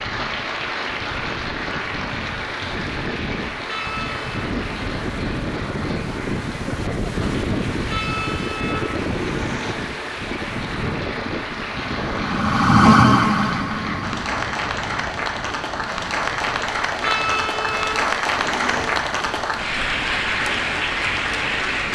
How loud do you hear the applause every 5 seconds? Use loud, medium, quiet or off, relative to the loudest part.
medium, medium, medium, loud, loud.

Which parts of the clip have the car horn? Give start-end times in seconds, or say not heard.
3.6-4.2, 7.8-9.8, 16.9-18.9.